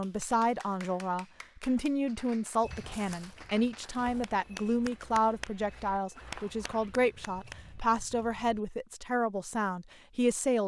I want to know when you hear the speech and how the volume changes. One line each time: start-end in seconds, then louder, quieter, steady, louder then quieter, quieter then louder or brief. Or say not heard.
0.0-10.6 steady.